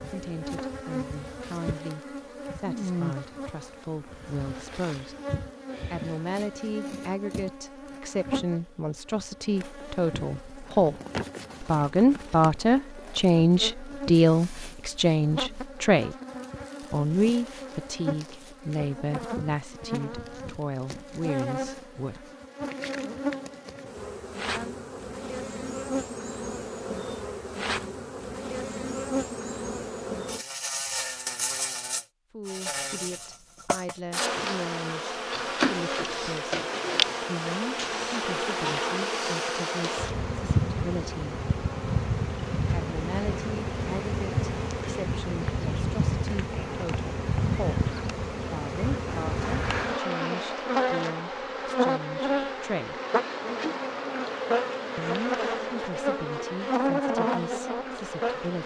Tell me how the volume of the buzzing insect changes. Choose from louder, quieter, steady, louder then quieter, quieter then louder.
louder.